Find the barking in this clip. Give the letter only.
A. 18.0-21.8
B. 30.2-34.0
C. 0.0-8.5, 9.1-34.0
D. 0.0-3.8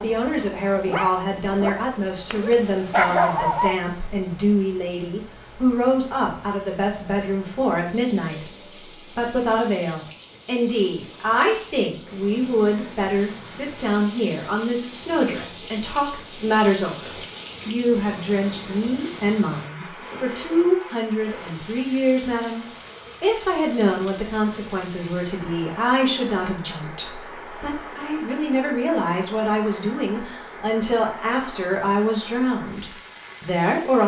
D.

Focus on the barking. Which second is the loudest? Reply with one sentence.
The volume of the barking peaks at 3 seconds.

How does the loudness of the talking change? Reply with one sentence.
The loudness of the talking stays about the same.